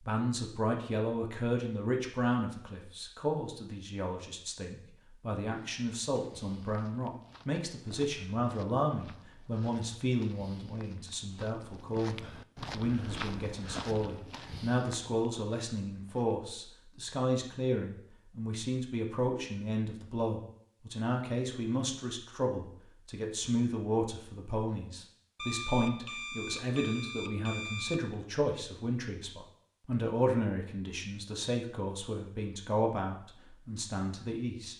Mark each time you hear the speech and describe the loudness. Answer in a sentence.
The speech can be heard from 0.0 to 34.7 s, at a steady volume.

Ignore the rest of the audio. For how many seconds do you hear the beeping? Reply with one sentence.
The beeping can be heard for 3 seconds in total.